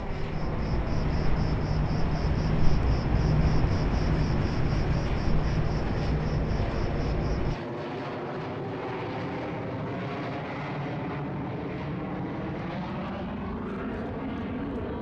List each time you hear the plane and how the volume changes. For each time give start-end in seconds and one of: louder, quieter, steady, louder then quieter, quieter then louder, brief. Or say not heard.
0.0-14.9 louder.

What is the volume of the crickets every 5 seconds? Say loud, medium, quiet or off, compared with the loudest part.
loud, loud, off.